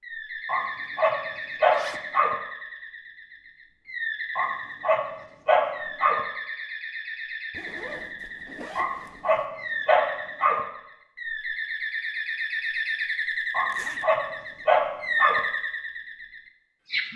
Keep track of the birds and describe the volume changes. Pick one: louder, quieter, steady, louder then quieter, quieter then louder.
louder.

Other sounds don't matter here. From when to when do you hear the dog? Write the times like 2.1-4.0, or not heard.
0.5-2.4, 4.3-6.2, 8.8-10.6, 13.5-15.4.